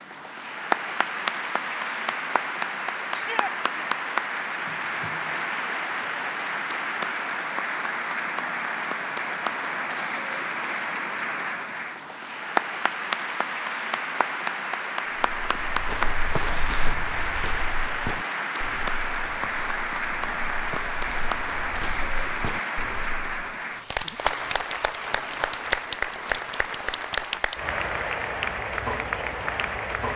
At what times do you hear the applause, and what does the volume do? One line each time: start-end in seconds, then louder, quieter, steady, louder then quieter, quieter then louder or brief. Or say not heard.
0.0-30.1 steady.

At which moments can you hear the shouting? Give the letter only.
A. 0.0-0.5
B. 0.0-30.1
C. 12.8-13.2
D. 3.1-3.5
D.